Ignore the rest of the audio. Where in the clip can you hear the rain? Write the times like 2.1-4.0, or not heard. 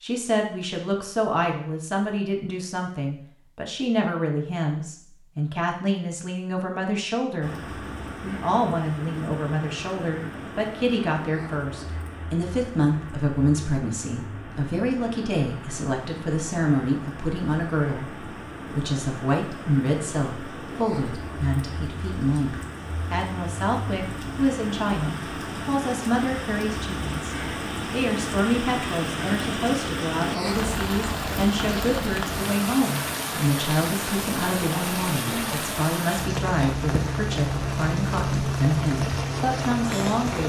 7.4-40.4.